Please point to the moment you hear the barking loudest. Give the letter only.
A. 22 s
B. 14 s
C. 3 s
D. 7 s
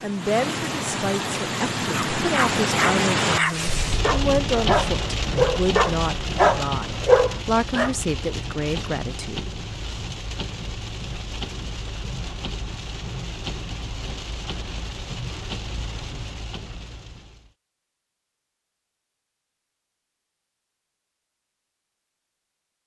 D.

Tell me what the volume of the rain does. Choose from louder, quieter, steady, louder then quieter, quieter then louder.
quieter.